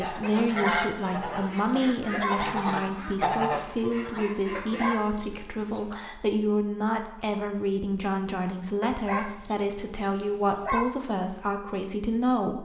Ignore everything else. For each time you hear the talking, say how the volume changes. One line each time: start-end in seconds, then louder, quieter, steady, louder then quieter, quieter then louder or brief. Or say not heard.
0.0-12.6 steady.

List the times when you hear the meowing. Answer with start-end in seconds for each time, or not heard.
not heard.